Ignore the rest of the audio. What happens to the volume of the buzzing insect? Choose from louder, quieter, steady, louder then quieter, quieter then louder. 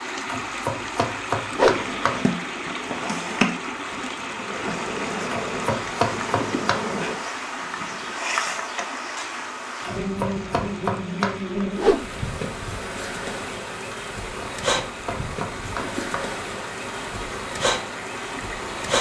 steady.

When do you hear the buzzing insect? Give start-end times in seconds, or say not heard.
1.7-18.9.